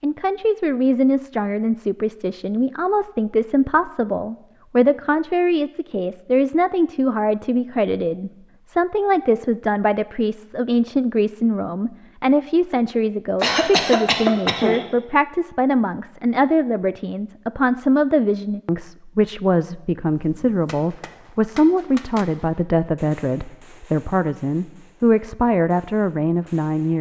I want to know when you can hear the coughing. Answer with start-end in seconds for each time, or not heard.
13.4-14.8.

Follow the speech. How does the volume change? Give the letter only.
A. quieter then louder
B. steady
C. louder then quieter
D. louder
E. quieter
B.